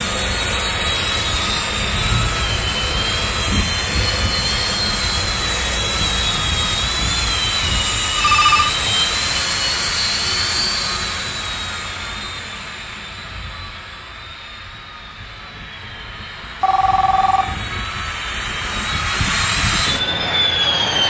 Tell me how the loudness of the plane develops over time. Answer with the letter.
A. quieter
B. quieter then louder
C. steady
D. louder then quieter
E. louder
B.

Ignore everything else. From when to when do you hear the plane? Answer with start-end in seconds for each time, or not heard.
0.0-21.0.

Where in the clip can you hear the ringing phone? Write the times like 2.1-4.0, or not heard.
8.2-8.8, 16.6-17.4.